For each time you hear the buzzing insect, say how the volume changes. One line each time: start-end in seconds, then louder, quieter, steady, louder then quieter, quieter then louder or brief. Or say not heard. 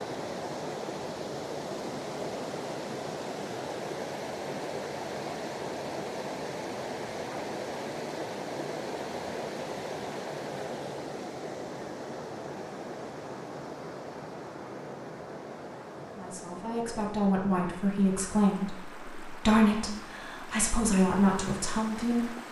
not heard.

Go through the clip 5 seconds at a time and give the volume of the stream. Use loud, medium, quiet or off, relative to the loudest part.
loud, loud, loud, medium, medium.